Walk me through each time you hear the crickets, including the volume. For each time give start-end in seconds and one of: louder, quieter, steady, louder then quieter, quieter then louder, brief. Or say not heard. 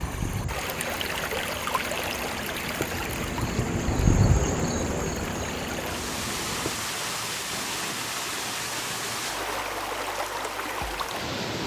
0.0-6.9 louder then quieter.